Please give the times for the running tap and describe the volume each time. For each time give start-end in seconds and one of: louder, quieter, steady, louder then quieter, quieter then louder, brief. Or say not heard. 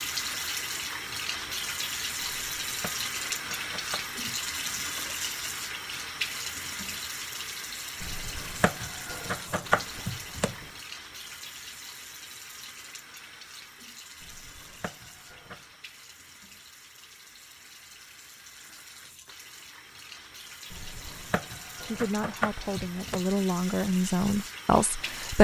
0.0-25.3 quieter then louder.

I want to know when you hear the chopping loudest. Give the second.
10 s.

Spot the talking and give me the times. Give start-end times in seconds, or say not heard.
21.9-25.3.